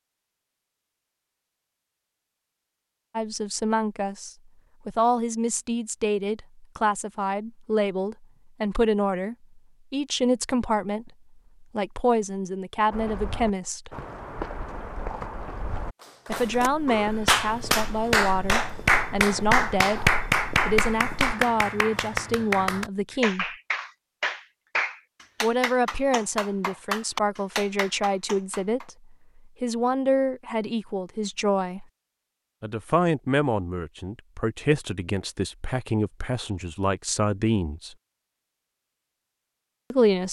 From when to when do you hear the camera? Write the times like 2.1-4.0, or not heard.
not heard.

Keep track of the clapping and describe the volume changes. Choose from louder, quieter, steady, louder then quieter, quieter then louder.
quieter.